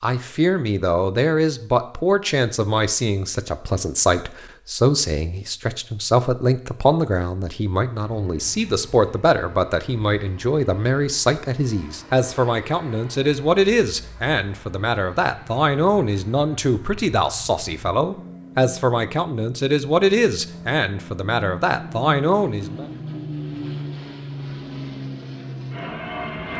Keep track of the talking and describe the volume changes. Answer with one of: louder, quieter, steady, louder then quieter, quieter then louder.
steady.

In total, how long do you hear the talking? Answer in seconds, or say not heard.
23 s.